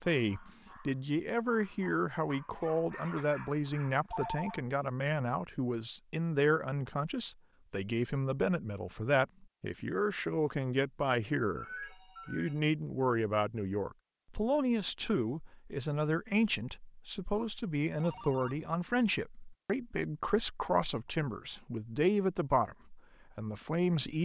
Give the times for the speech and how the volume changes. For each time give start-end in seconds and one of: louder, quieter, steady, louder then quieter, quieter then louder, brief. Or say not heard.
0.0-24.2 steady.